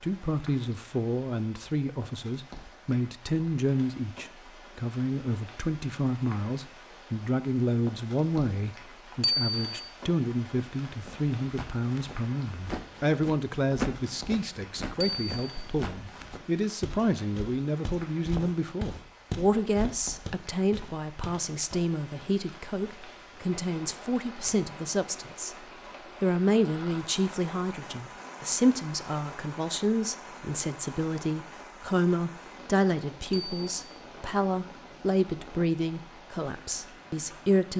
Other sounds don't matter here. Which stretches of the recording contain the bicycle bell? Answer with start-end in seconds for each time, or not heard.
9.2-9.9, 15.0-15.7, 33.3-33.8.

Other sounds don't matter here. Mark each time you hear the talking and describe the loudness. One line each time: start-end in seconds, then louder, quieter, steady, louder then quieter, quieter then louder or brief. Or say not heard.
0.0-37.7 steady.